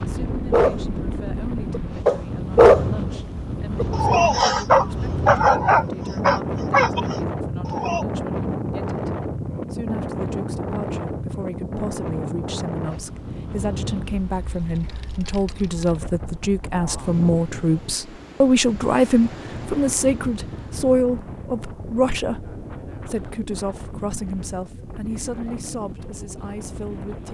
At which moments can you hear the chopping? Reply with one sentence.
The chopping can't be heard in this clip.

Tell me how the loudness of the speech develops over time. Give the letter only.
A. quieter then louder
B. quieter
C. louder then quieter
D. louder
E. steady
C.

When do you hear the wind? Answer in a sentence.
The wind can be heard from 0.0 to 27.2 s.